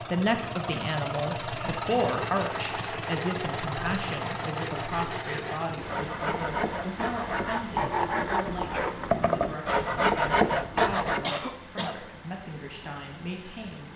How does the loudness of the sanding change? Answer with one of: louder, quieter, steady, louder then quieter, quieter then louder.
louder.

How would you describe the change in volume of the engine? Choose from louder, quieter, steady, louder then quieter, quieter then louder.
quieter.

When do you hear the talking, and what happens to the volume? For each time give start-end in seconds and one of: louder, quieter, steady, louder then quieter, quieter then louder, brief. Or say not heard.
0.1-13.9 quieter.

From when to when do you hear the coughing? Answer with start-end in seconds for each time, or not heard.
1.6-2.1, 11.2-12.0.